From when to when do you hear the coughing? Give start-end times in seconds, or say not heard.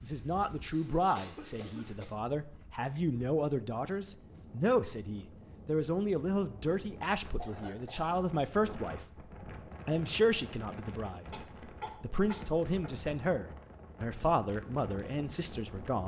1.1-2.1, 7.3-8.1, 11.3-13.1.